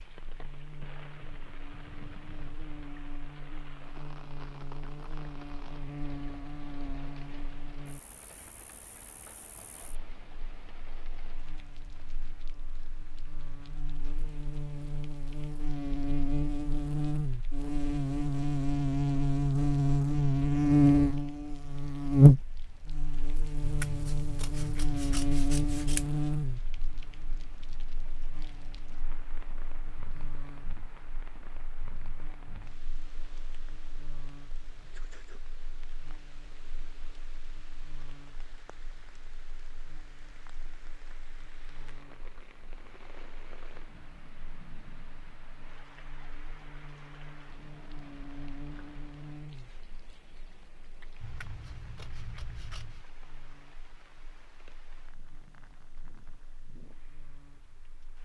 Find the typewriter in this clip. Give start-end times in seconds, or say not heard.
not heard.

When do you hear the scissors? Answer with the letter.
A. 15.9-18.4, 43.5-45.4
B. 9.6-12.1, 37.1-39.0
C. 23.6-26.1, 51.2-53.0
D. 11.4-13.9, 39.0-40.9
C.